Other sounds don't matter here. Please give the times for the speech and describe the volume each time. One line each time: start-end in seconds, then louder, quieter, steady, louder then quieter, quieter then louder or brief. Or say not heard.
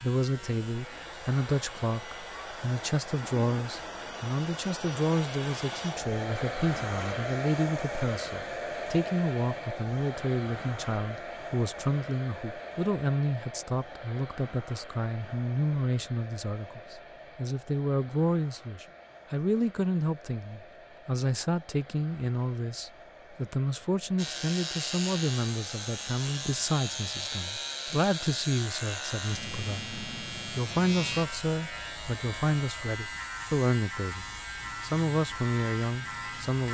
0.0-36.6 steady.